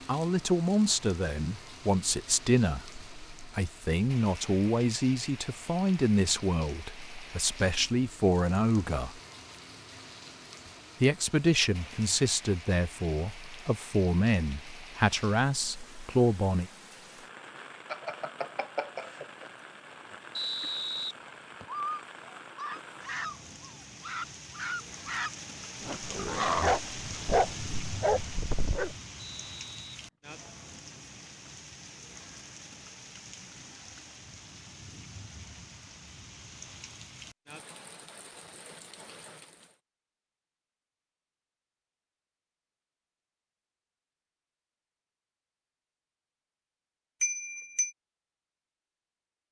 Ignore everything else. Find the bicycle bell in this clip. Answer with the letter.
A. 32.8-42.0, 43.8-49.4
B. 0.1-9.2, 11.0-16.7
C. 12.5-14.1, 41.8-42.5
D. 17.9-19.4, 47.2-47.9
D.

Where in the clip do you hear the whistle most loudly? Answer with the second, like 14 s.
21 s.